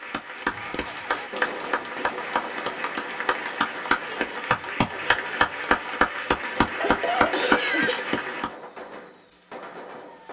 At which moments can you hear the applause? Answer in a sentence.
You can hear the applause from 0.0 to 8.4 s.